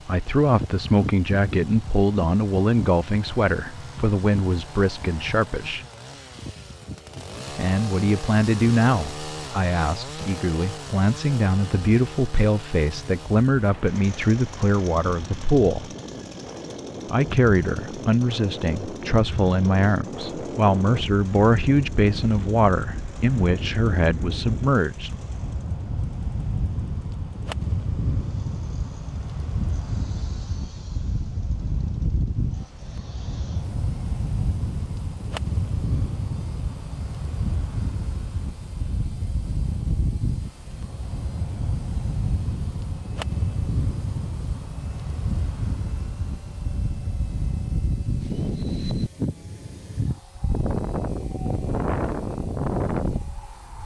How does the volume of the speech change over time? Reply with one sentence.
The volume of the speech stays about the same.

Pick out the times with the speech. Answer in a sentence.
You can hear the speech from 0.1 to 5.8 s, from 7.5 to 15.9 s and from 17.1 to 25.1 s.